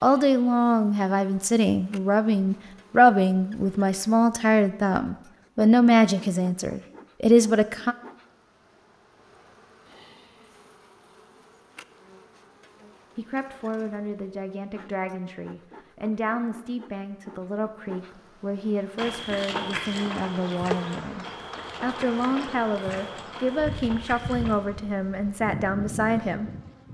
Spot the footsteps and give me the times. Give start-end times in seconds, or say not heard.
18.9-24.6.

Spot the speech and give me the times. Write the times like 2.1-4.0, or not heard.
0.0-8.0, 13.2-26.5.